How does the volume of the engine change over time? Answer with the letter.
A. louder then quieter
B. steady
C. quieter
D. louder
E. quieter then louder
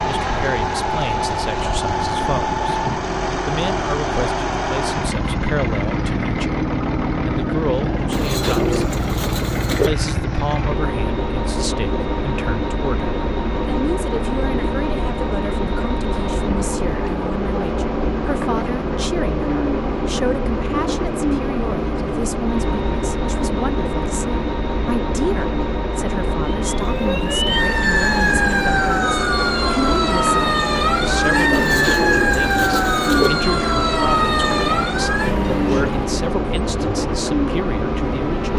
B.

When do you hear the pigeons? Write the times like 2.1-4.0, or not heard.
8.1-9.9, 31.5-33.3.